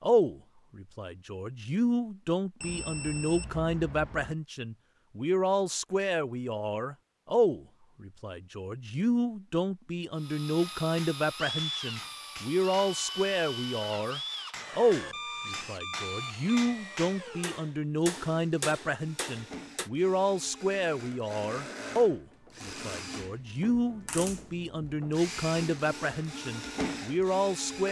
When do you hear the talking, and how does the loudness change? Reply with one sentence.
The talking can be heard from 0.0 to 27.8 s, at a steady volume.